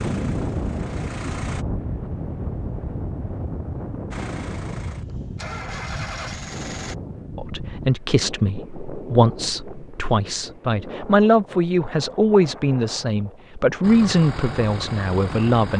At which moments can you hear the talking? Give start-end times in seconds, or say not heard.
7.3-15.7.